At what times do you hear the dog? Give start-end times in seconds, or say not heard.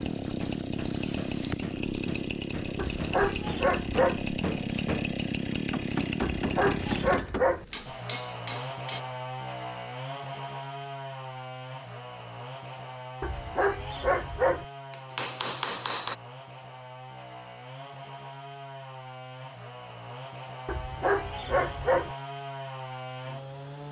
2.8-4.2, 6.2-7.7, 13.2-14.7, 20.6-22.1.